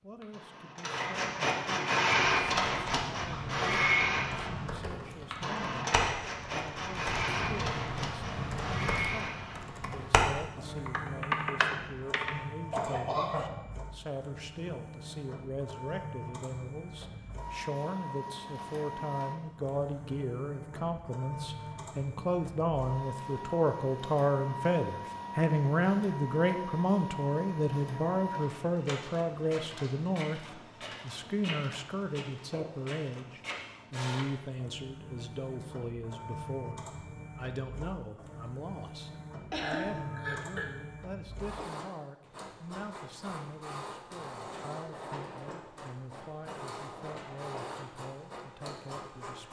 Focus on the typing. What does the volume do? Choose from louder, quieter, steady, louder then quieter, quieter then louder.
louder.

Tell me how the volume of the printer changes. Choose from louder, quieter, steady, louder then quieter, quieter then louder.
quieter.